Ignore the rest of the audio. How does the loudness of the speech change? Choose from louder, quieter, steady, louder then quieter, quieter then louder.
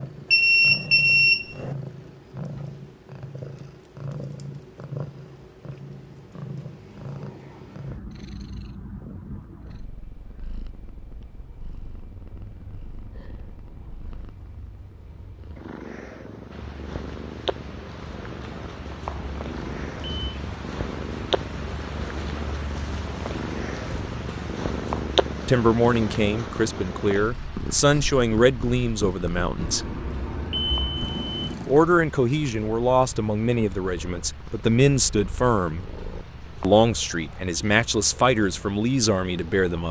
steady.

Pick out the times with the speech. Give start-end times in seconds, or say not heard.
25.4-29.9, 31.6-35.9, 36.6-39.8.